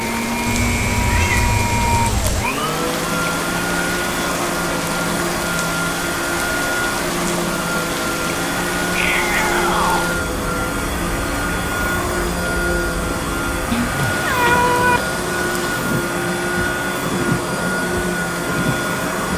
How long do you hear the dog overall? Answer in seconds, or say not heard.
not heard.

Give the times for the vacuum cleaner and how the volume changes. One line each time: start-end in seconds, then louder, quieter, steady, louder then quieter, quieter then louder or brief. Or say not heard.
0.0-19.3 steady.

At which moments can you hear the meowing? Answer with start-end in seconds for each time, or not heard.
0.5-2.5, 8.9-10.1, 13.7-15.0.